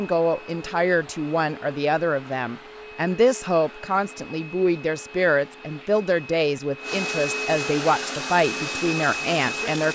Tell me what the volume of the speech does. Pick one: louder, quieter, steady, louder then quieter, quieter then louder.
steady.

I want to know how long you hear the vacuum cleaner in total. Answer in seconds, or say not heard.
10 s.